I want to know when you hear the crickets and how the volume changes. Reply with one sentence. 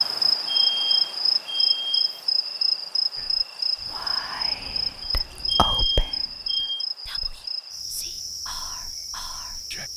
You can hear the crickets from 0.0 to 9.9 s, getting quieter.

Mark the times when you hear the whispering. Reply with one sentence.
You can hear the whispering from 3.1 to 9.9 s.